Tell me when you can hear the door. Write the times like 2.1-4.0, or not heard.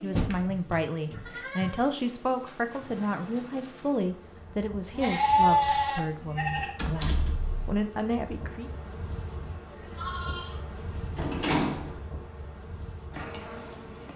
0.1-1.3, 6.8-7.6, 11.2-12.0.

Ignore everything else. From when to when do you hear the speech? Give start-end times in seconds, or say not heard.
0.0-8.7.